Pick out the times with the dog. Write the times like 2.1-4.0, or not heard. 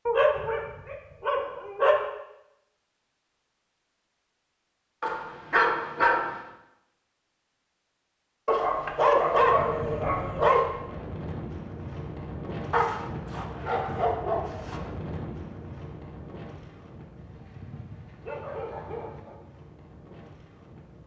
0.1-2.0, 5.0-6.4, 8.4-10.7, 12.7-14.8, 17.1-19.4.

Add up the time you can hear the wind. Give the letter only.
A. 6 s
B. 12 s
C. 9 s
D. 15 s
B.